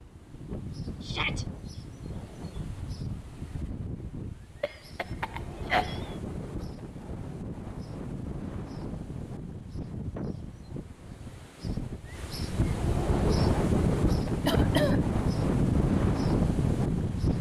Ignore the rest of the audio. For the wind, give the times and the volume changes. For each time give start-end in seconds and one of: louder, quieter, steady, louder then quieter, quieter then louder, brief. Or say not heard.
0.0-17.3 louder.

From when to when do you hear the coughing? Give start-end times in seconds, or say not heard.
4.6-6.2, 14.4-15.1.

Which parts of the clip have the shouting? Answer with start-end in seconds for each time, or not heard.
1.0-1.4.